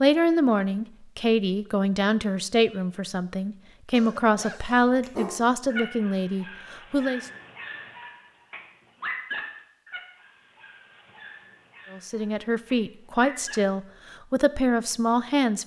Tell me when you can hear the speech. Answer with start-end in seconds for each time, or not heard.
0.0-7.2, 11.9-15.6.